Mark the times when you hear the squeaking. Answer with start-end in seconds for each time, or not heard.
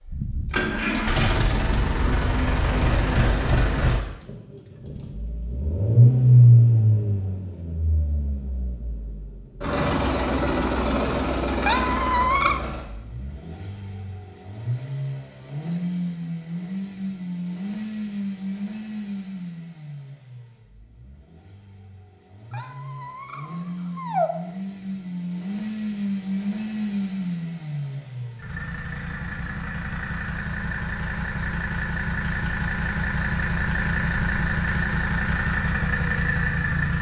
11.6-12.6, 22.5-24.3.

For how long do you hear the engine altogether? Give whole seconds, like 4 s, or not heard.
37 s.